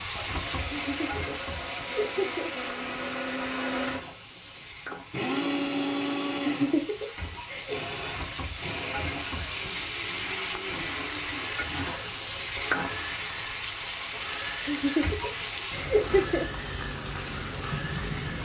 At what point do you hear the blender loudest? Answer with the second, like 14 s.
6 s.